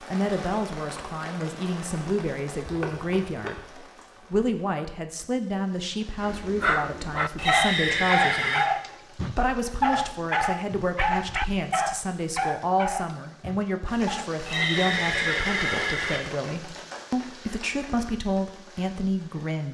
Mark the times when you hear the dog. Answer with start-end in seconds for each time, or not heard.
6.2-14.3.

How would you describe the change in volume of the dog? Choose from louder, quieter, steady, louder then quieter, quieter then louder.
quieter.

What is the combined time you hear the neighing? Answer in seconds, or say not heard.
4 s.